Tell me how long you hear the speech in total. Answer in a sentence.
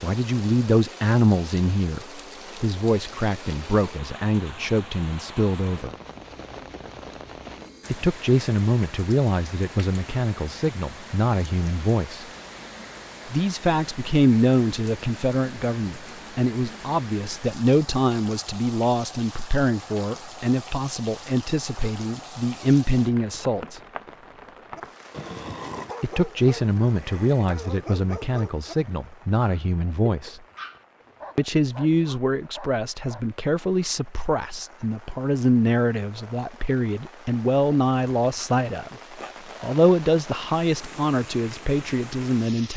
You can hear the speech for 36 seconds altogether.